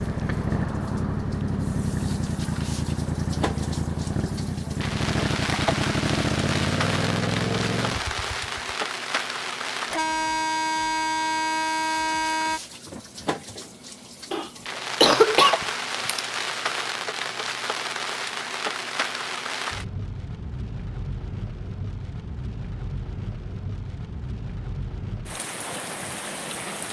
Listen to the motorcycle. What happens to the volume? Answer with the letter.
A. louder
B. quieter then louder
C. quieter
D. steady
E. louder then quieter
D.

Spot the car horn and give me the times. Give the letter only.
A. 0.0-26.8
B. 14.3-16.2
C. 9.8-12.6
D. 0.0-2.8
C.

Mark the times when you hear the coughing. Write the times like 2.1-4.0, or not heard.
14.3-16.2.